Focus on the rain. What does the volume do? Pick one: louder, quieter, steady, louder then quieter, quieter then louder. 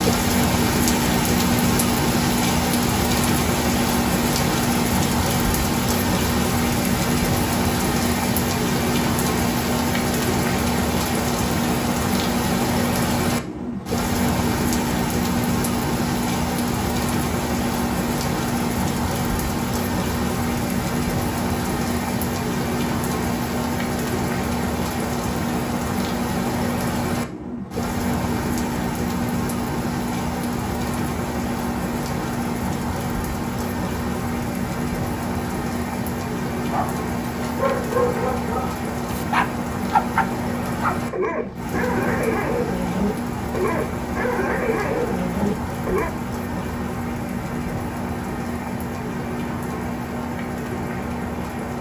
quieter.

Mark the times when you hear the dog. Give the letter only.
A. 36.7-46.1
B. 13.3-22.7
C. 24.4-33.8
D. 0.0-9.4
A.